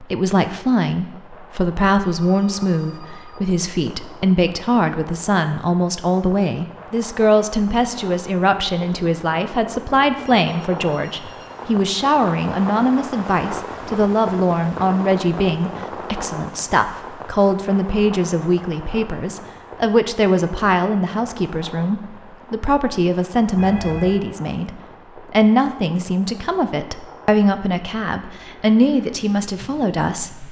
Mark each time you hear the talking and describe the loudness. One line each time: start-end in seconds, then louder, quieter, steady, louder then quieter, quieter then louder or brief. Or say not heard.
0.0-30.4 steady.